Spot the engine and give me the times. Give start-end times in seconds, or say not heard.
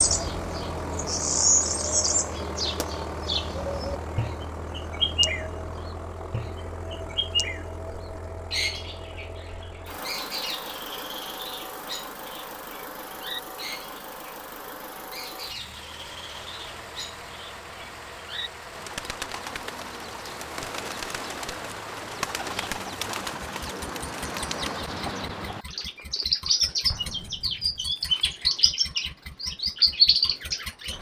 0.0-30.9.